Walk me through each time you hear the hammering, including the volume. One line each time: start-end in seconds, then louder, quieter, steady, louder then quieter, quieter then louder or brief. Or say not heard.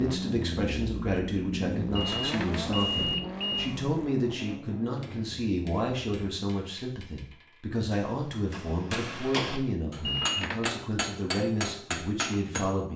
5.0-12.8 louder.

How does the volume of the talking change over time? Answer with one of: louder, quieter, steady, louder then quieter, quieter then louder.
steady.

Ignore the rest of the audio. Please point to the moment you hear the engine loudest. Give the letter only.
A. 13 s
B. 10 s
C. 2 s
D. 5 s
C.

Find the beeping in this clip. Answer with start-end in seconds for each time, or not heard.
1.9-3.7, 10.1-10.7.